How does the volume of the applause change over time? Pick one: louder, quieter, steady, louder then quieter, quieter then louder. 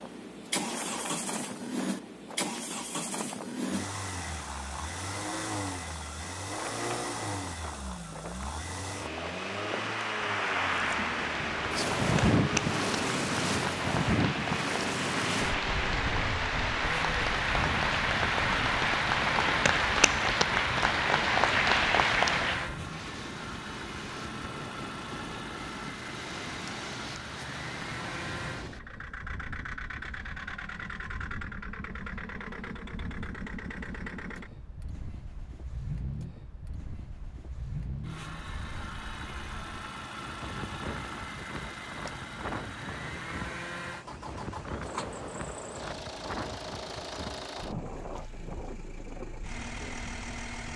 louder.